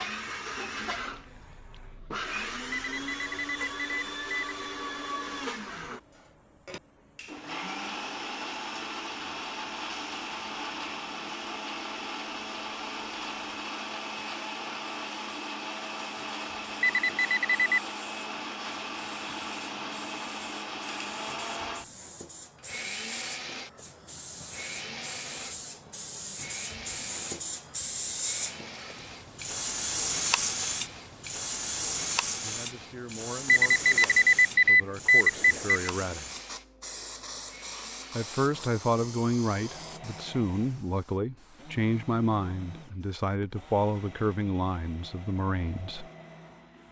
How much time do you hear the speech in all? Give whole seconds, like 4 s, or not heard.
12 s.